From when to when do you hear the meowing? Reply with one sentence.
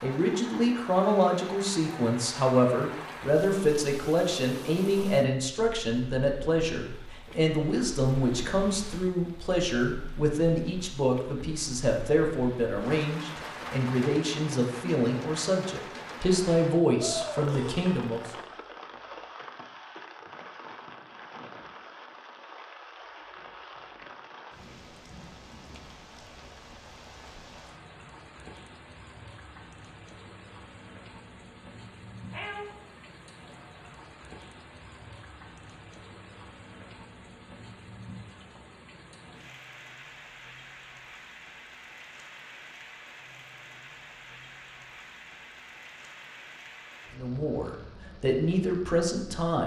The meowing can be heard from 17.0 to 18.1 s and from 32.3 to 33.6 s.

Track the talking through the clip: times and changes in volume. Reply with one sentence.
The talking can be heard from 0.0 to 18.3 s, at a steady volume; and briefly from 47.1 to 49.6 s.